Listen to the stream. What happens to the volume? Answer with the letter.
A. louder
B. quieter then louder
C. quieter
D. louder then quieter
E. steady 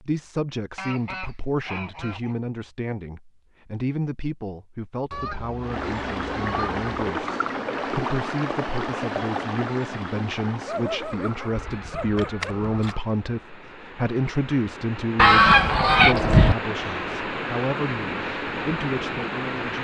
B.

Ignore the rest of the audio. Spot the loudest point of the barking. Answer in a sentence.
The volume of the barking peaks at 11 seconds.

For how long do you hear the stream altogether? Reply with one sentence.
You can hear the stream for 14 seconds altogether.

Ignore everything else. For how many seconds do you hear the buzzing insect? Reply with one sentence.
You can't hear the buzzing insect here.